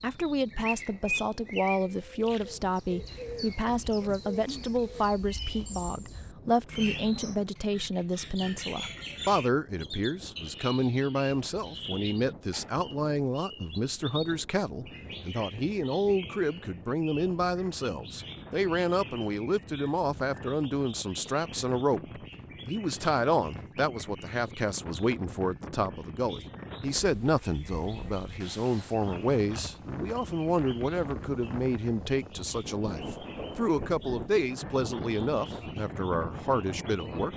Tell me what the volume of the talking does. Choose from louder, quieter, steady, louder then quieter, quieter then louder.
steady.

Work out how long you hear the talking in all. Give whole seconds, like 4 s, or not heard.
37 s.